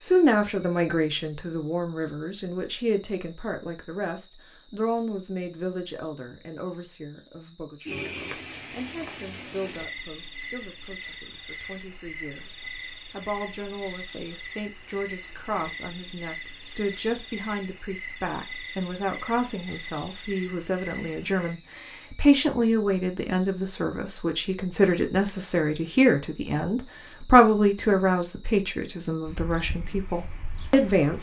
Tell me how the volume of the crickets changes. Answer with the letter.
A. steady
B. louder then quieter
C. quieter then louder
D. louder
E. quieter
A.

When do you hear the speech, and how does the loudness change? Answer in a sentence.
You can hear the speech from 0.0 to 31.1 s, getting quieter then louder.